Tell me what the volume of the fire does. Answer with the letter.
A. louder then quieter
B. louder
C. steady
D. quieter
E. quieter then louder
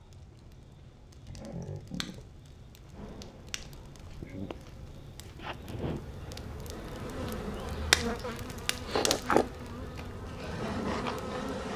A.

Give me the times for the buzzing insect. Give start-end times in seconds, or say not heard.
2.9-11.7.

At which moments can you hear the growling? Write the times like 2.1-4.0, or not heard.
1.2-2.4.